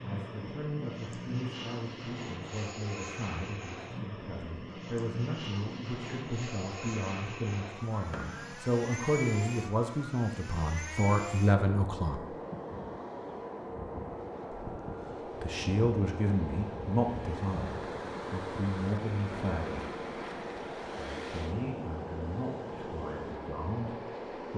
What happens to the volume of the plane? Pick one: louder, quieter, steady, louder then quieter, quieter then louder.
steady.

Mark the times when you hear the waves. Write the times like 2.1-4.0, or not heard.
12.2-24.5.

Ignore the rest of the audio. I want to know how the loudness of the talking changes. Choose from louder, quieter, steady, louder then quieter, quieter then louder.
louder then quieter.